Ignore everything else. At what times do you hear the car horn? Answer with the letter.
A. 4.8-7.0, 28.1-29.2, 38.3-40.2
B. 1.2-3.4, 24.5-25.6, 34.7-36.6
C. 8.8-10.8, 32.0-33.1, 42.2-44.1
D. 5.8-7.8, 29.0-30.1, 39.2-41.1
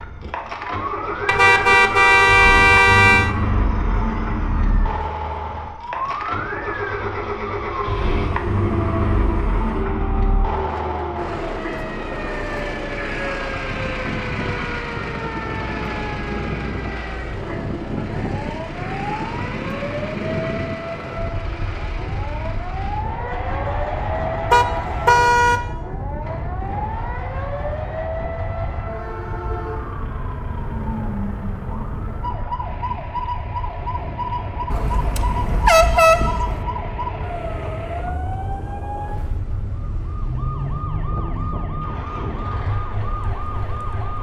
B.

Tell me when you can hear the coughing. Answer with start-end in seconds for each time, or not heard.
not heard.